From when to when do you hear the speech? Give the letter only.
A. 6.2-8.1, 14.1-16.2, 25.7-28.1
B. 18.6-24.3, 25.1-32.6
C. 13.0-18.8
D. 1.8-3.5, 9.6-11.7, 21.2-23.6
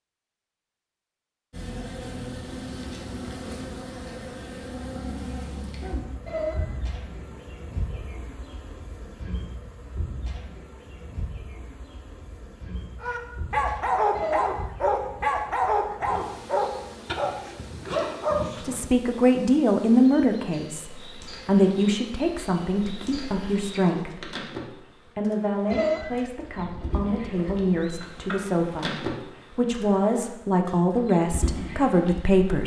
B.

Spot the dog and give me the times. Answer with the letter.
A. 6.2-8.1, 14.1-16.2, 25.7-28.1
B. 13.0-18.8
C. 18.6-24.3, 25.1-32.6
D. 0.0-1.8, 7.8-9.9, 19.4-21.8
B.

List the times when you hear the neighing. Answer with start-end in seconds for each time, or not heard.
6.2-8.1, 14.1-16.2, 25.7-28.1.